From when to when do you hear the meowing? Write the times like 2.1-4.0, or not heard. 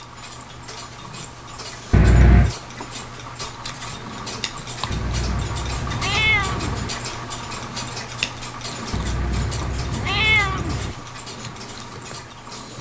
1.9-2.5, 4.9-6.9, 8.9-10.9.